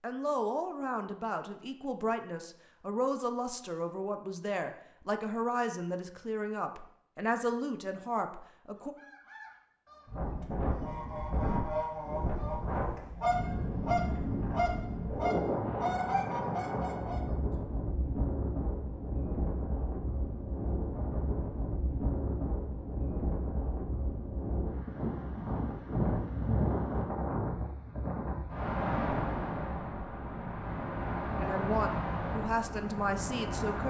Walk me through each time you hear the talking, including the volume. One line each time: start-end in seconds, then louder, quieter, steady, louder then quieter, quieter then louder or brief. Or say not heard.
0.0-8.9 steady
31.4-33.8 brief.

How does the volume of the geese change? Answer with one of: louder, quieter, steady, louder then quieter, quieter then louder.
louder.